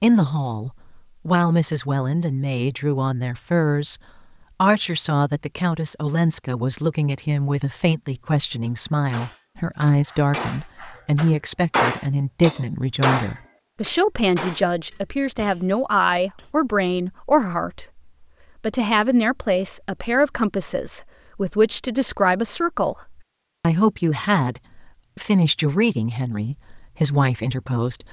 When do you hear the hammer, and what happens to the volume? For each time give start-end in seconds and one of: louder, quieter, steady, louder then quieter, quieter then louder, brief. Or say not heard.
8.7-16.5 louder then quieter.